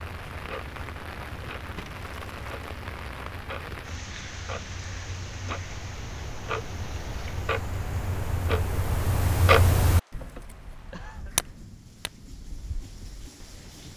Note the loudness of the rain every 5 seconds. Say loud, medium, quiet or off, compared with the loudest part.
loud, medium, medium.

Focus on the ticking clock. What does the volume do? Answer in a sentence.
The loudness of the ticking clock goes up, then down.